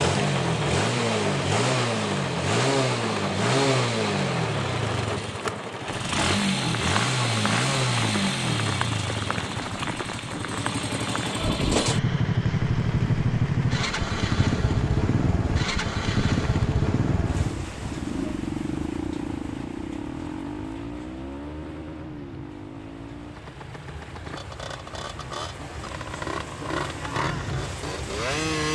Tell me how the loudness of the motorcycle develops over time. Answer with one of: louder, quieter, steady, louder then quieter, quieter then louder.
quieter.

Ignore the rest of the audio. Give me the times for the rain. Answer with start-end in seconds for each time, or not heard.
0.1-28.7.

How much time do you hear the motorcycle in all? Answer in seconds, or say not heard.
29 s.